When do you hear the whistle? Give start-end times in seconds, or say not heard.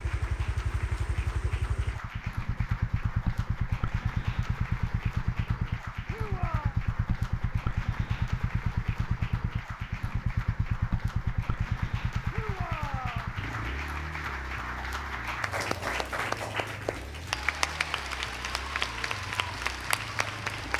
not heard.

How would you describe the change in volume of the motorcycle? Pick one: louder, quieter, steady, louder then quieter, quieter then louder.
quieter.